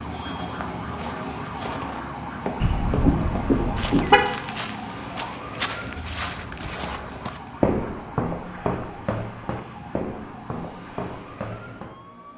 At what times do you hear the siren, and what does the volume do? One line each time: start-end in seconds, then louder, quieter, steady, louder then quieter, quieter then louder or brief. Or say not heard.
0.0-12.3 quieter.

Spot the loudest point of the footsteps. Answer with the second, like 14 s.
8 s.